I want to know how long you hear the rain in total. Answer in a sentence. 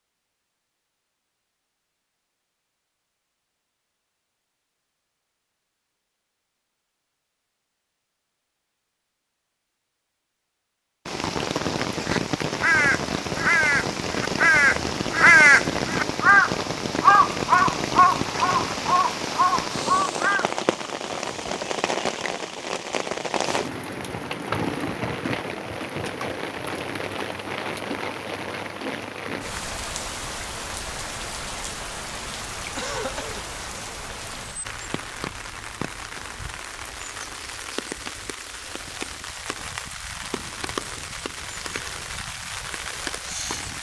You can hear the rain for 33 seconds altogether.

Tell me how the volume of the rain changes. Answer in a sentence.
The loudness of the rain goes down.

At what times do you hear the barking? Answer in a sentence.
You can't hear the barking here.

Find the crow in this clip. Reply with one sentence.
The crow can be heard from 12.0 to 20.4 s.